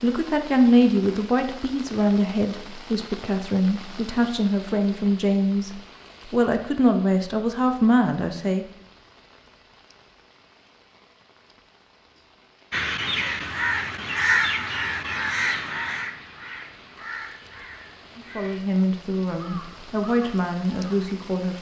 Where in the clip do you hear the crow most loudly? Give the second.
14 s.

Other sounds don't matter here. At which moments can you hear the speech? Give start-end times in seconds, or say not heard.
0.0-8.7, 18.1-21.5.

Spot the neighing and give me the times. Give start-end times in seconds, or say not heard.
not heard.